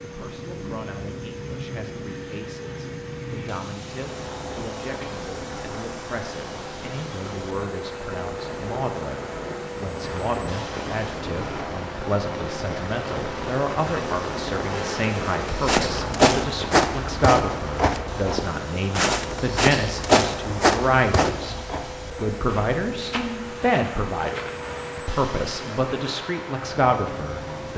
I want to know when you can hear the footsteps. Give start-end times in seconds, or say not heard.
15.4-25.1.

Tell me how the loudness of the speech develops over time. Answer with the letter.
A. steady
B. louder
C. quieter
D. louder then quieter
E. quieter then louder
B.